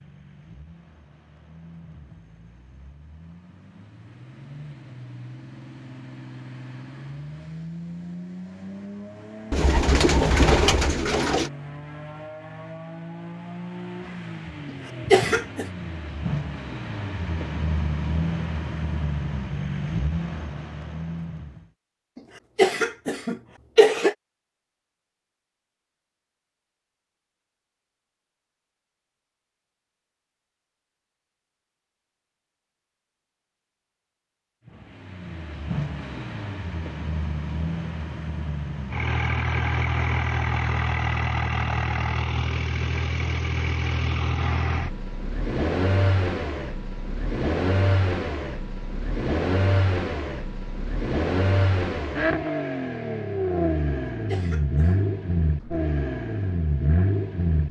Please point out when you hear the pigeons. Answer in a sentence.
You can hear the pigeons from 9.5 to 11.5 s.